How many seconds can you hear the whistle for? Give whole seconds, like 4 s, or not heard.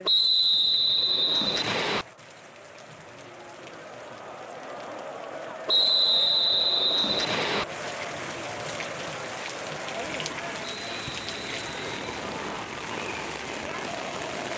6 s.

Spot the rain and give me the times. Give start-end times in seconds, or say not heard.
0.0-14.5.